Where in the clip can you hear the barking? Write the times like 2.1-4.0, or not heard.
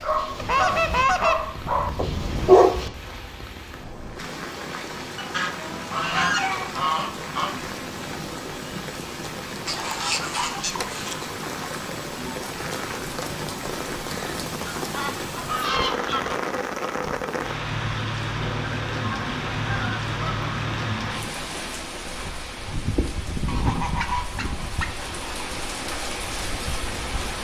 0.0-2.8.